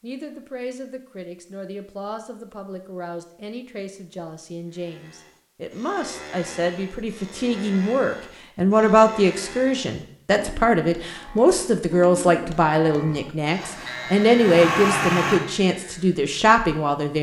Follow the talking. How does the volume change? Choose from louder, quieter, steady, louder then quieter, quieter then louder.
louder.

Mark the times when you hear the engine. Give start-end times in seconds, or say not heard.
13.6-15.4.